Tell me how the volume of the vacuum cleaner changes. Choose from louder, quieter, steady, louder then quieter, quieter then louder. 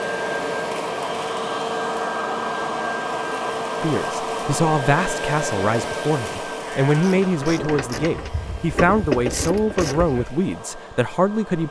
quieter.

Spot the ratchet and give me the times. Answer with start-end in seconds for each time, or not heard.
6.9-10.2.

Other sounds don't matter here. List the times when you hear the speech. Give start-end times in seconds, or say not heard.
3.8-11.6.